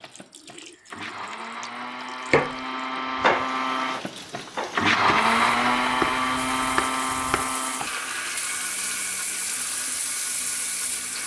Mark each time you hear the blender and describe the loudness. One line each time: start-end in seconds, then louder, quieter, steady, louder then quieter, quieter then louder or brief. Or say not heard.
0.0-11.2 louder then quieter.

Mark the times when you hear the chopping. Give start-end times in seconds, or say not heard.
2.3-7.8.